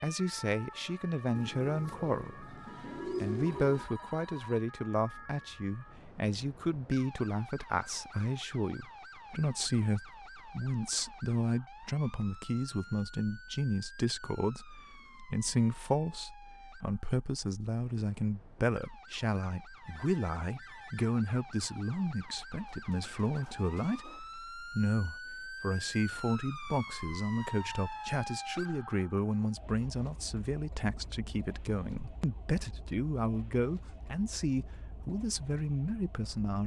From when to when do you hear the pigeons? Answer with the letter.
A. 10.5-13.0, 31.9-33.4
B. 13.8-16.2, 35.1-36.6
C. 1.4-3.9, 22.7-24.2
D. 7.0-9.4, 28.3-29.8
C.